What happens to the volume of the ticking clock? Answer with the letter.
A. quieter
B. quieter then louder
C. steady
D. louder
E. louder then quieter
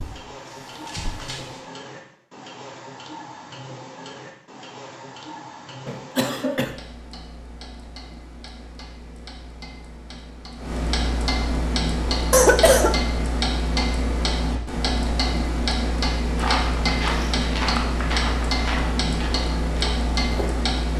D.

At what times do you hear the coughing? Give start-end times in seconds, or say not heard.
5.8-6.7, 12.3-12.9.